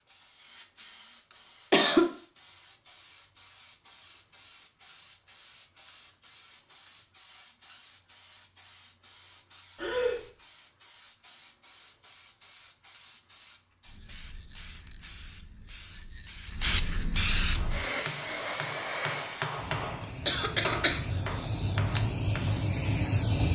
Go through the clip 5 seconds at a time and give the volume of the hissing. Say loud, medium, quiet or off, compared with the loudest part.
quiet, quiet, quiet, loud, loud.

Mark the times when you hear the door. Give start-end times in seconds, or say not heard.
not heard.